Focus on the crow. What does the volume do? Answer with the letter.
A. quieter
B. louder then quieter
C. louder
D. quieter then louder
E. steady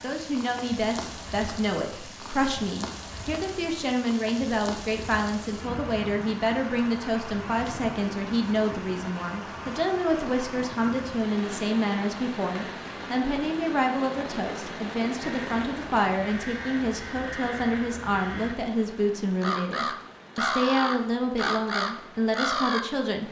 C.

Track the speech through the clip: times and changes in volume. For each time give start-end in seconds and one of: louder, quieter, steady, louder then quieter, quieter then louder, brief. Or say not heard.
0.0-23.2 steady.